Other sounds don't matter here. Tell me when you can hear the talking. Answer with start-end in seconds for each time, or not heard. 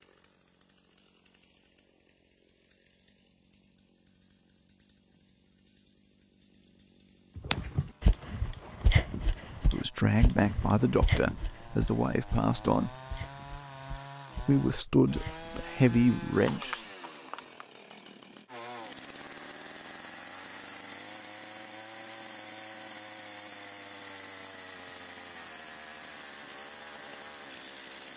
9.7-12.9, 14.4-16.8.